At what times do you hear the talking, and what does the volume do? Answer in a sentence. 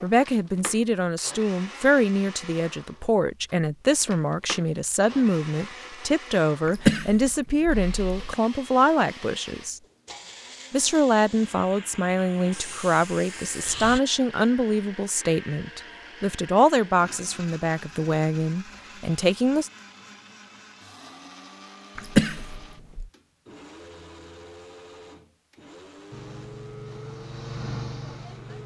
You can hear the talking from 0.0 to 9.8 s, at a steady volume; and from 10.7 to 19.7 s, at a steady volume.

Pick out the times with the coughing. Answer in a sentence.
You can hear the coughing from 6.7 to 8.3 s and from 21.9 to 23.1 s.